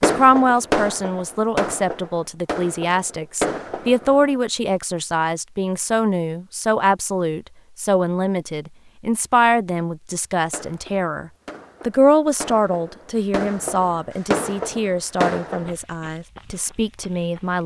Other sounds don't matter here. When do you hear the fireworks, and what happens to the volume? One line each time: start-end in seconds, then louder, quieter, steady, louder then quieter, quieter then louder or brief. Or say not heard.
0.0-4.2 quieter then louder
10.4-15.8 louder.